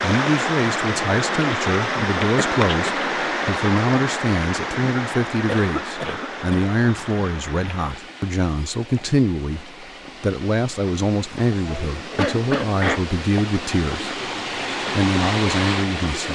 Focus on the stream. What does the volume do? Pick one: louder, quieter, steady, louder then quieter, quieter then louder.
quieter then louder.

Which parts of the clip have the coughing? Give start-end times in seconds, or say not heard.
2.4-3.0, 5.5-6.7, 11.6-13.1.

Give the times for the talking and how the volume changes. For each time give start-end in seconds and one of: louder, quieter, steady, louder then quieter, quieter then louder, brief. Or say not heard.
0.0-14.2 steady
14.9-16.3 brief.